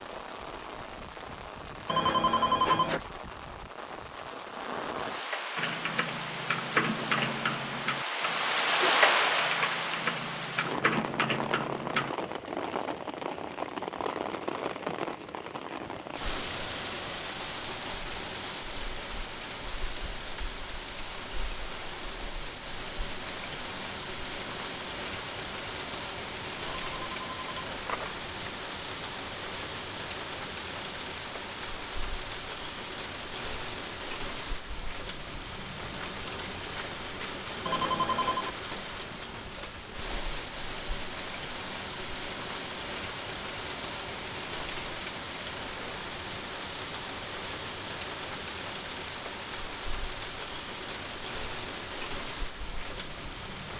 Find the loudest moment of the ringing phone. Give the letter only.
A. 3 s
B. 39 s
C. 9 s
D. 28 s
A.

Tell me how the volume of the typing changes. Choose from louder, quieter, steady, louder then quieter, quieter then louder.
quieter then louder.